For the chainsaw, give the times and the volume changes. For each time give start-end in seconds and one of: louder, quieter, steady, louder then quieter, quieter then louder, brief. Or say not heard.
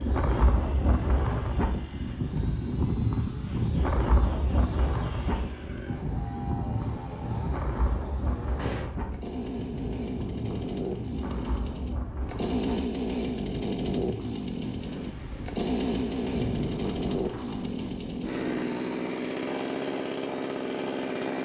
0.0-21.3 louder.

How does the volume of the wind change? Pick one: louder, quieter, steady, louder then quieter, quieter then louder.
quieter.